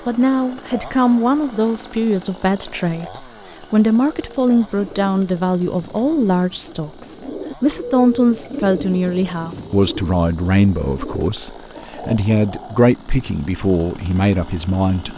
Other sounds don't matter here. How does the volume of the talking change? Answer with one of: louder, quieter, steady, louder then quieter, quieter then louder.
steady.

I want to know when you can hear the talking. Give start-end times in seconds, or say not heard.
0.1-15.1.